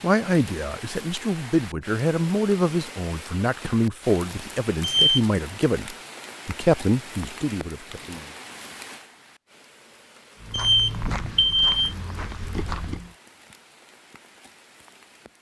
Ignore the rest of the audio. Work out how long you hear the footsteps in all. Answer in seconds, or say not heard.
3 s.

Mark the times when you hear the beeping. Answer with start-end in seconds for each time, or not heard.
4.8-5.2, 10.5-11.9.